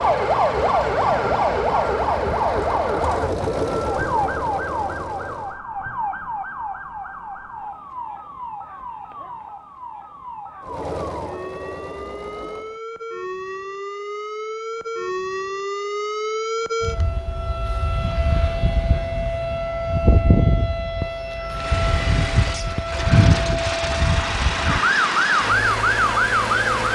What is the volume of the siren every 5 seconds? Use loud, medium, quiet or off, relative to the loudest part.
loud, quiet, quiet, medium, loud, loud.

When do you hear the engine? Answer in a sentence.
The engine can be heard from 0.0 to 5.6 s, from 10.6 to 12.8 s and from 21.4 to 26.9 s.